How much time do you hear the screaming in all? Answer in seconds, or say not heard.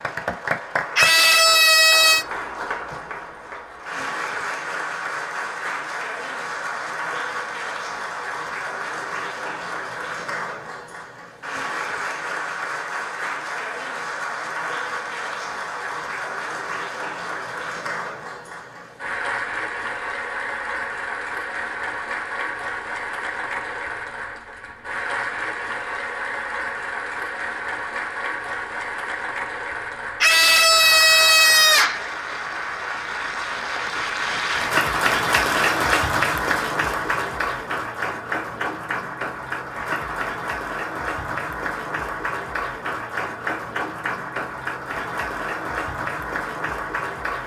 3 s.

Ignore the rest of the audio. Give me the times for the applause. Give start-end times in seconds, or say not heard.
0.0-47.4.